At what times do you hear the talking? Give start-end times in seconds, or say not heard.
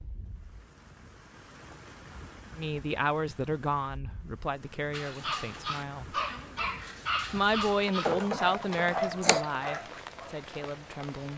2.5-6.2, 7.3-11.3.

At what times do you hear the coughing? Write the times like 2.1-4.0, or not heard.
8.0-9.4.